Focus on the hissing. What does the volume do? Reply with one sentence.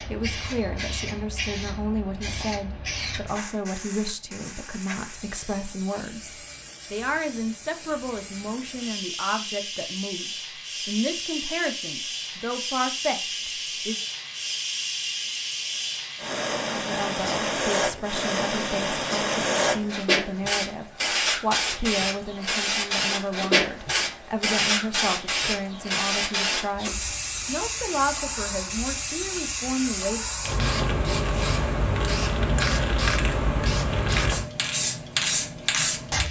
The loudness of the hissing goes up.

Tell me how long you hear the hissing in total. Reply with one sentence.
The hissing can be heard for 36 seconds in total.